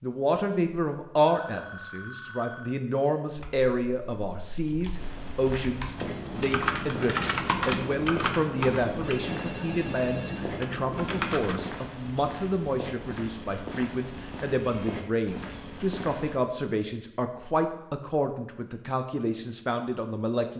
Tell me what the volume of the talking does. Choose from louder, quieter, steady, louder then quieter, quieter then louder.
steady.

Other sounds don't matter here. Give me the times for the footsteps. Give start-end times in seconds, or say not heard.
5.0-16.4.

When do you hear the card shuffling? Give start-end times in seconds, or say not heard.
not heard.